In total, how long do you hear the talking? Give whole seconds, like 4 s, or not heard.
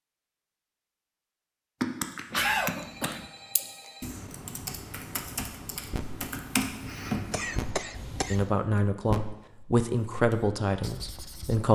3 s.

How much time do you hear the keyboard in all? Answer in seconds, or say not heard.
7 s.